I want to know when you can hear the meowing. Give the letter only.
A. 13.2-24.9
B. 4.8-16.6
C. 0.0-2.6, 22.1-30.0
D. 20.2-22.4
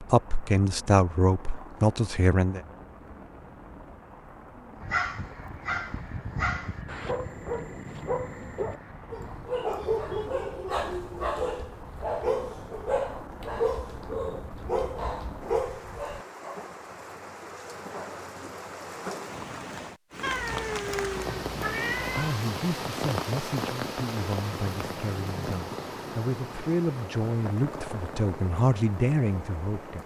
D.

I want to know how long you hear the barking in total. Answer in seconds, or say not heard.
12 s.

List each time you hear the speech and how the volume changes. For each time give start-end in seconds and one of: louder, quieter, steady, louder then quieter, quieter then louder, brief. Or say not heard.
0.0-2.6 brief
22.1-30.0 louder.